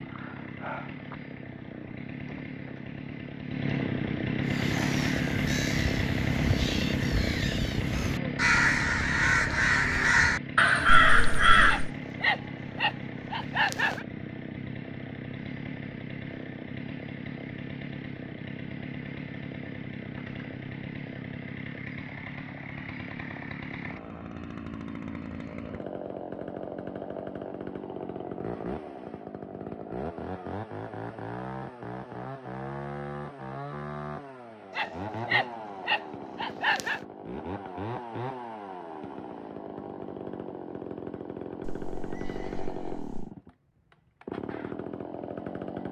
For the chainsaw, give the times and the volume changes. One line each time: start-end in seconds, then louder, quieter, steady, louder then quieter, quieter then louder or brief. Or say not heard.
0.0-45.8 quieter.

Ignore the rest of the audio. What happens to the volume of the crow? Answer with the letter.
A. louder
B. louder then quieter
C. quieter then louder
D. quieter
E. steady
A.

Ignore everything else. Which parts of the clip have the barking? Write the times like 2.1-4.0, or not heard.
11.7-14.1, 34.7-37.0.